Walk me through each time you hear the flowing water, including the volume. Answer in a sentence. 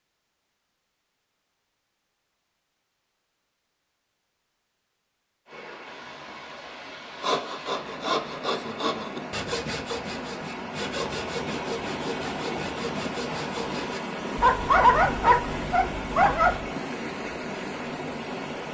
You can hear the flowing water from 5.5 to 18.6 s, getting louder.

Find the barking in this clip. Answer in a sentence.
The barking can be heard from 14.3 to 16.6 s.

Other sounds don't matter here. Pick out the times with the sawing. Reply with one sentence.
The sawing can be heard from 7.2 to 14.0 s.